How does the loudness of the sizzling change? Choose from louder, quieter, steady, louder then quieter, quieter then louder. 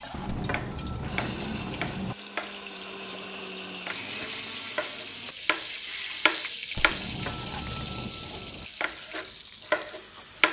louder then quieter.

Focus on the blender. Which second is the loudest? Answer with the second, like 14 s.
4 s.